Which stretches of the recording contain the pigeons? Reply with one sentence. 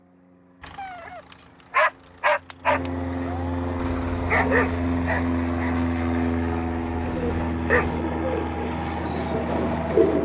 You can hear the pigeons from 7.0 to 10.2 s.